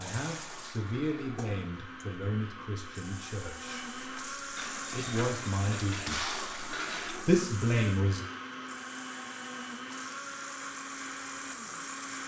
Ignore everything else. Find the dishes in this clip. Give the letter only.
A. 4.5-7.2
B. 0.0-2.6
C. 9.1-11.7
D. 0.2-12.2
A.